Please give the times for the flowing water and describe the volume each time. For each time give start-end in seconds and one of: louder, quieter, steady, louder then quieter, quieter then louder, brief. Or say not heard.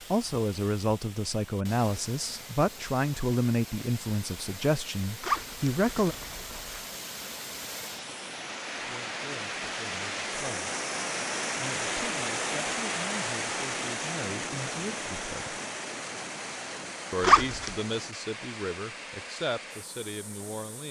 0.0-20.8 louder then quieter.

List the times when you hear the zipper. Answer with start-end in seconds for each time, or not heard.
5.2-6.8, 17.2-17.7.